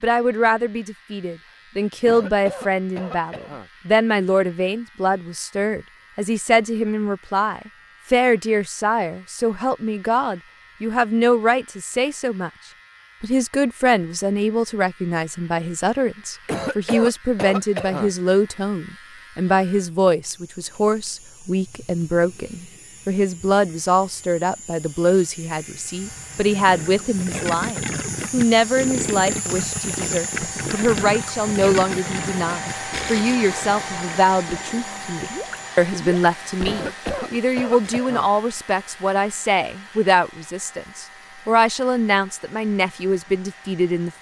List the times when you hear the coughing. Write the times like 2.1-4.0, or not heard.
2.0-3.7, 16.4-18.1, 36.6-38.3.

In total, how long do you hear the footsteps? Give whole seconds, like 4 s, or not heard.
not heard.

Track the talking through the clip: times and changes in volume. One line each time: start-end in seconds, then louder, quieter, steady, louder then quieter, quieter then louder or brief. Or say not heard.
0.0-12.5 steady
13.2-44.1 steady.